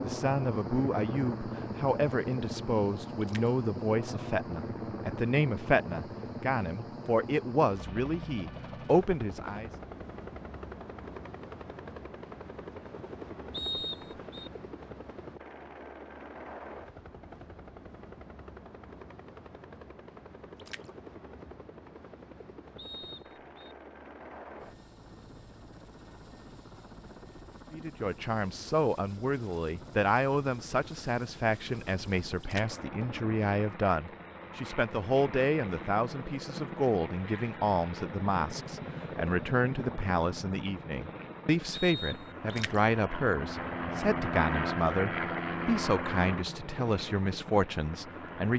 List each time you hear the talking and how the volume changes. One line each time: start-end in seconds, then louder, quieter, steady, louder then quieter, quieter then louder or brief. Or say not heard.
0.0-9.7 steady
27.7-48.5 steady.